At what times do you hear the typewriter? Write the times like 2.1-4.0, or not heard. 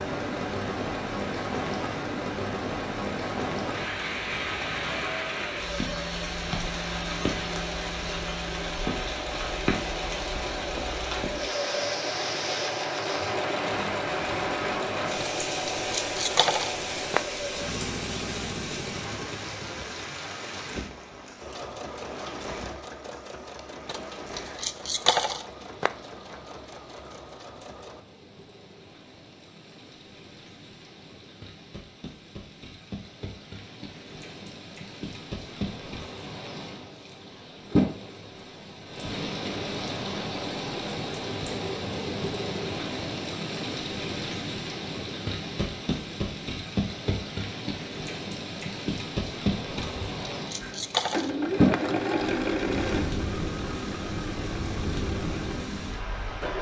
not heard.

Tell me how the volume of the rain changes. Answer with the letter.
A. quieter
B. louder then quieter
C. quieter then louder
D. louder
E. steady
C.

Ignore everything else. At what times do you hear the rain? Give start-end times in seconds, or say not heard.
0.0-56.5.